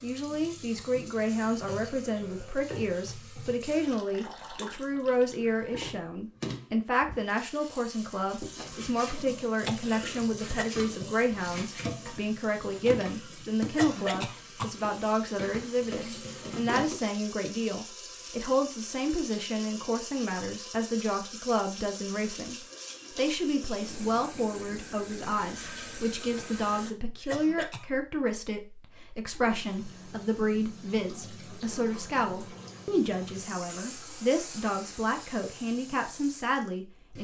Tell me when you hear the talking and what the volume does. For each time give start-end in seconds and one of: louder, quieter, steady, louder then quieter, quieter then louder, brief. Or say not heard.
0.0-37.1 steady.